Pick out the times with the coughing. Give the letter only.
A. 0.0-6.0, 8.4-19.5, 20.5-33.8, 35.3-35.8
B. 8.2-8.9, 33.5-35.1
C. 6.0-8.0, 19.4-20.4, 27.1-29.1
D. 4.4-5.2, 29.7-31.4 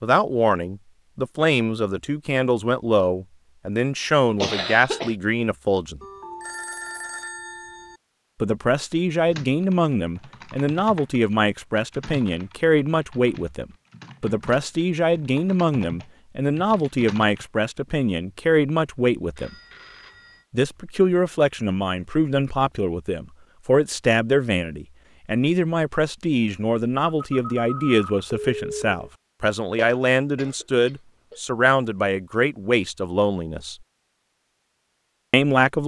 D.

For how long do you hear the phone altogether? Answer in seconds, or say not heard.
5 s.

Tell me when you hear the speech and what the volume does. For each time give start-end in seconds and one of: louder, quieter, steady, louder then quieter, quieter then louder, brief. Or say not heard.
0.0-6.0 steady
8.4-19.5 steady
20.5-33.8 steady
35.3-35.8 brief.